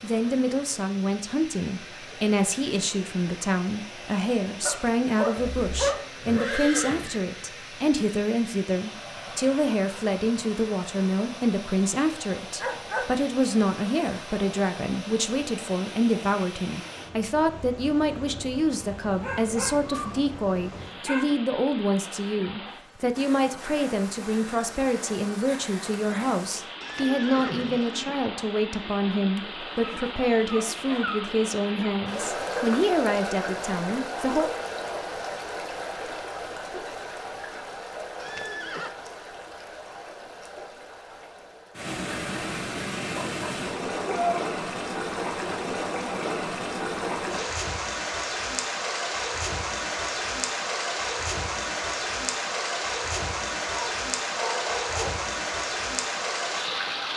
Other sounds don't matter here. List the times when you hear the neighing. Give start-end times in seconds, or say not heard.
5.3-7.2, 26.8-28.1, 38.2-38.9.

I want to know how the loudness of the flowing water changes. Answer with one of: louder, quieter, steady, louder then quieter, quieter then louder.
louder.